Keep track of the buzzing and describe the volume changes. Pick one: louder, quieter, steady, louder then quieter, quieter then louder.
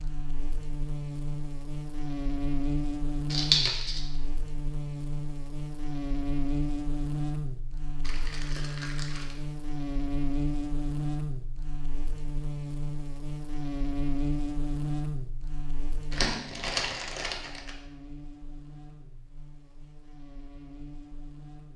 quieter.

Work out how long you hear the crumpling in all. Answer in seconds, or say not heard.
4 s.